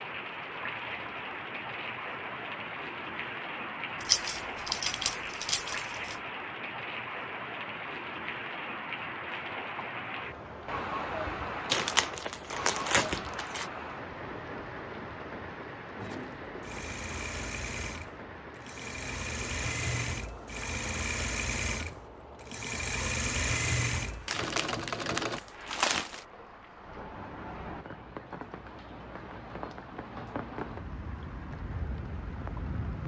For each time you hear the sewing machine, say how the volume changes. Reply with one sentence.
The sewing machine can be heard from 15.9 to 25.4 s, getting louder.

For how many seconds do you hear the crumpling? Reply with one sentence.
The crumpling can be heard for 6 seconds in total.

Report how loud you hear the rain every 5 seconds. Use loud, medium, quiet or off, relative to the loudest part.
loud, loud, loud, medium, medium, medium, loud.